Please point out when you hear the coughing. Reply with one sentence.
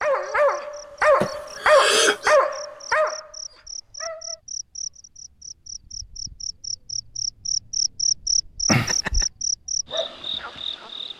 The coughing can be heard from 1.2 to 2.4 s and from 8.7 to 9.2 s.